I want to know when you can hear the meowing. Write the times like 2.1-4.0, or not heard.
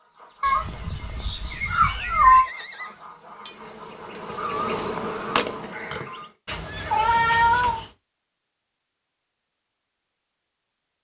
0.4-2.5, 6.5-7.9.